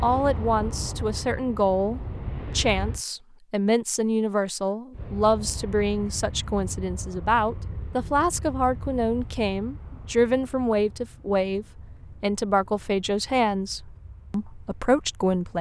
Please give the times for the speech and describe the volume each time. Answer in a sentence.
You can hear the speech from 0.0 to 15.5 s, at a steady volume.